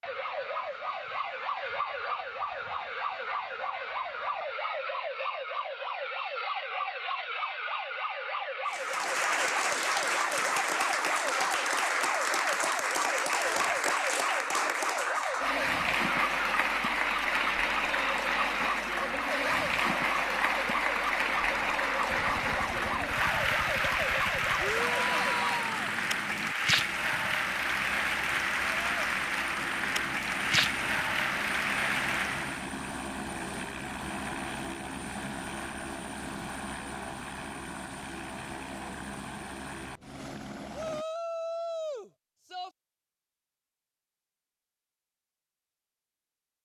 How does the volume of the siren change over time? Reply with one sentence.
The loudness of the siren stays about the same.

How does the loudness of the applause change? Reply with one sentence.
The loudness of the applause stays about the same.